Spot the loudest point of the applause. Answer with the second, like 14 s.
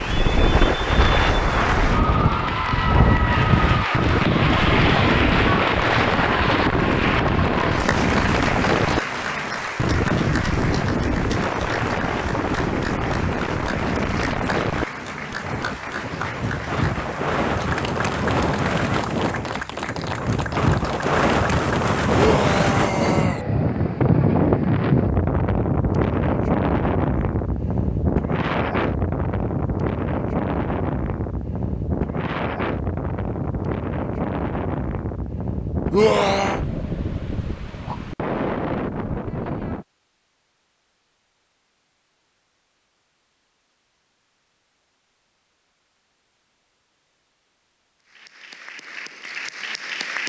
5 s.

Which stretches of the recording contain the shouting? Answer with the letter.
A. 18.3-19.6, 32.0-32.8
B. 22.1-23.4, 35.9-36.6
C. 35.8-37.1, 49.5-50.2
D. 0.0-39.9
B.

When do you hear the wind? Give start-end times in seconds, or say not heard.
0.0-39.9.